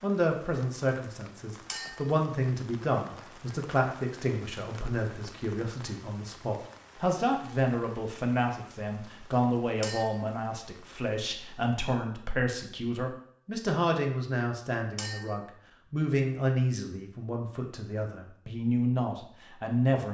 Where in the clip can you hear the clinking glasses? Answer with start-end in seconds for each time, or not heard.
1.6-2.1, 9.8-10.2, 14.9-15.4.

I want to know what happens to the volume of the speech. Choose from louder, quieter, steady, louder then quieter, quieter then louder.
steady.